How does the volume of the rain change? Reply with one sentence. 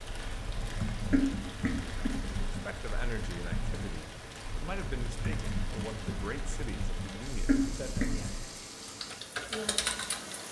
The loudness of the rain stays about the same.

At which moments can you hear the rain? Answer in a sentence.
The rain can be heard from 0.0 to 10.4 s.